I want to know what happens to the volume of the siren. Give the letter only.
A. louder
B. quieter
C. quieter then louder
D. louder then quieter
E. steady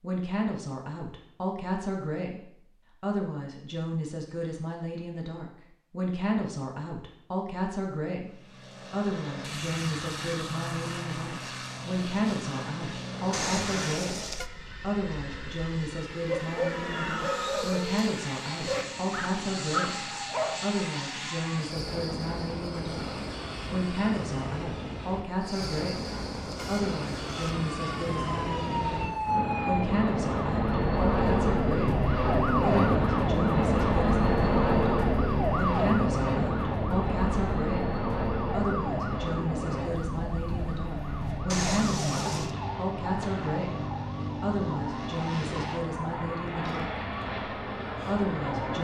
B.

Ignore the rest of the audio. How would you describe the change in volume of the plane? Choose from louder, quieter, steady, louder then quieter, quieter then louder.
louder then quieter.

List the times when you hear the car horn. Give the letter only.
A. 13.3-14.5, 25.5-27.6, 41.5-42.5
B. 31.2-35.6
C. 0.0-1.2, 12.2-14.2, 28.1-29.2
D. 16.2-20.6
A.